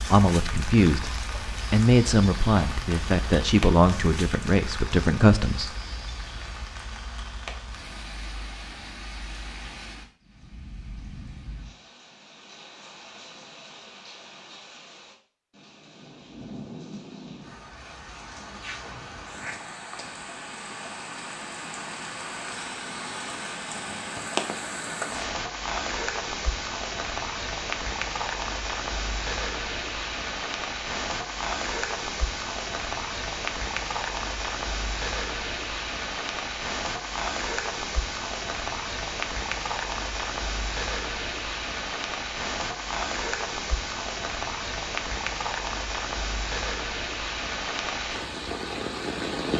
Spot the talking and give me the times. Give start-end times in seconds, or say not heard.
0.0-5.7.